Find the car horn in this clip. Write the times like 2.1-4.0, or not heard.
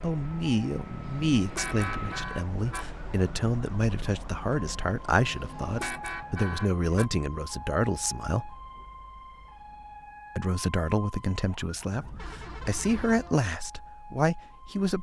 1.1-3.0, 5.3-7.1, 11.9-13.3.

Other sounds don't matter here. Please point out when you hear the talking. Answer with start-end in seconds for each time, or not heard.
0.0-8.6, 10.3-14.9.